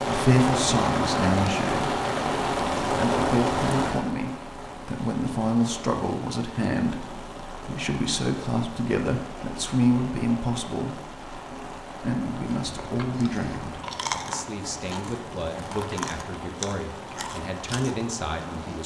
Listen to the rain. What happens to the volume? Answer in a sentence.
The volume of the rain goes down.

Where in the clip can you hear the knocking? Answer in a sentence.
You can't hear the knocking here.